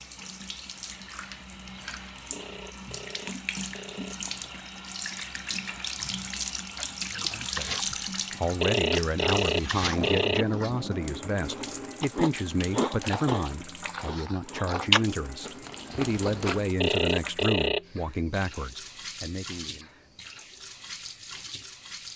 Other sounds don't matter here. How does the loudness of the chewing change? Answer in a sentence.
The volume of the chewing goes up.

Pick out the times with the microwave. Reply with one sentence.
You can't hear the microwave here.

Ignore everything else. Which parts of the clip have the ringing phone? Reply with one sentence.
The ringing phone can be heard from 2.3 to 4.2 s, from 8.6 to 10.4 s and from 16.8 to 17.9 s.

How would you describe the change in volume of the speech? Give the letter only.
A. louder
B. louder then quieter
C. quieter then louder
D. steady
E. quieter
D.